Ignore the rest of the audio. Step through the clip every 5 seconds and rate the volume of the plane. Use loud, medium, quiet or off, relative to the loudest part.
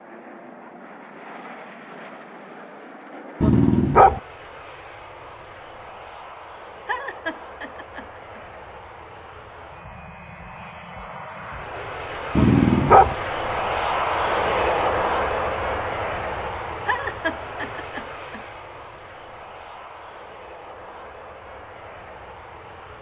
quiet, quiet, loud, loud, quiet.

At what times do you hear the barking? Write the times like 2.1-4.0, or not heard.
3.4-4.2, 12.3-13.2.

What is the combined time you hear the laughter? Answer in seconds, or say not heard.
3 s.